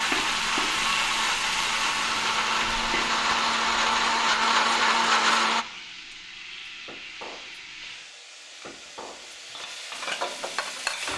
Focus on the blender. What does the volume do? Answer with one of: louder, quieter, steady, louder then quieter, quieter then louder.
louder.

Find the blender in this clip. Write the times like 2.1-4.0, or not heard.
0.0-5.7.